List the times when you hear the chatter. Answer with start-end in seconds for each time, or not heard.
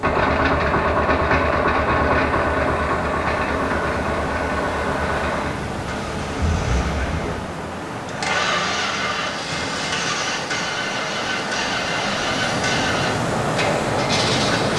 not heard.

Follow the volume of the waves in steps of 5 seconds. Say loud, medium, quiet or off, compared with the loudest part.
medium, medium, loud.